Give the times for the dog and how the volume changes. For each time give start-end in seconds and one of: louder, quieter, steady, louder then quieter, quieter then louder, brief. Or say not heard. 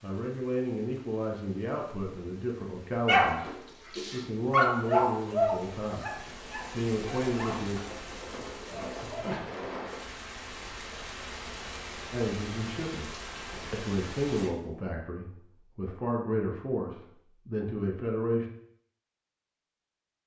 3.0-7.7 louder then quieter
8.7-9.4 brief.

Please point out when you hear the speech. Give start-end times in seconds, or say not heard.
0.0-7.8, 12.1-13.1, 13.7-18.4.